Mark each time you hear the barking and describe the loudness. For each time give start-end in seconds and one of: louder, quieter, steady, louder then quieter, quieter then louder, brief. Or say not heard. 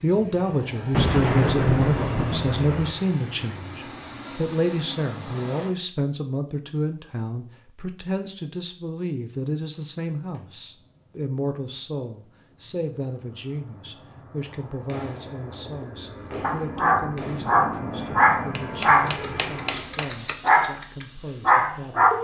16.4-22.1 steady.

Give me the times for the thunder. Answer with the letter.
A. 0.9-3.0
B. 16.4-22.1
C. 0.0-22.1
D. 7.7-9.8
A.